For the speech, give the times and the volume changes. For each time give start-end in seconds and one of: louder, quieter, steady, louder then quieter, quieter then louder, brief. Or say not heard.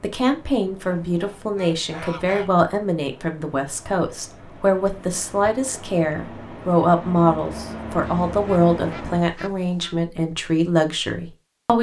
0.0-11.7 steady.